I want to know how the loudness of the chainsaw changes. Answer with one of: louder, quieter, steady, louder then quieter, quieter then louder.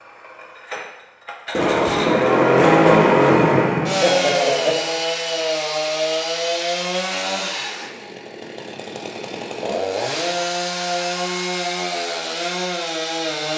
quieter.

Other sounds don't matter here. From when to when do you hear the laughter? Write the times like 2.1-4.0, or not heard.
4.0-4.8.